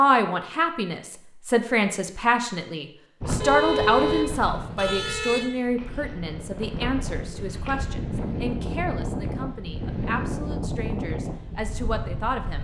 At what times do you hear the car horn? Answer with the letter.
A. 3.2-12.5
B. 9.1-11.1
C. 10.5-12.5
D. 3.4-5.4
D.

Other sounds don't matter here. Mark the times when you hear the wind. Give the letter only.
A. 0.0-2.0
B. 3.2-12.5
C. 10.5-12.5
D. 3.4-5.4
B.